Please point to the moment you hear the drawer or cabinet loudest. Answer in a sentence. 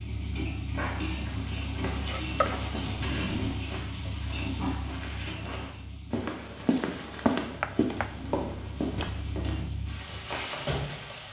The volume of the drawer or cabinet peaks at 3 seconds.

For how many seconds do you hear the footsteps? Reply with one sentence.
The footsteps can be heard for 9 seconds in total.